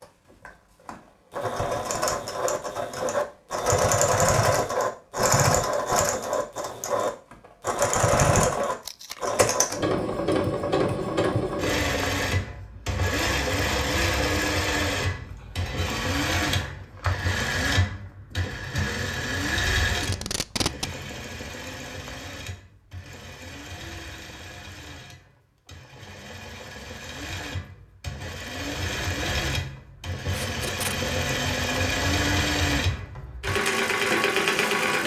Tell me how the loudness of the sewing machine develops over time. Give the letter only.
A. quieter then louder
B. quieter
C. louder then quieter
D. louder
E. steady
A.